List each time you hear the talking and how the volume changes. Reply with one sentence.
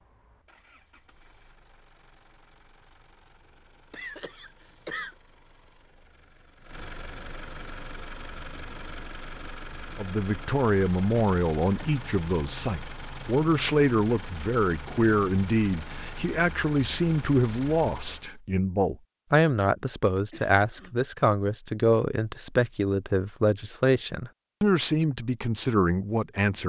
The talking can be heard from 9.9 to 26.6 s, at a steady volume.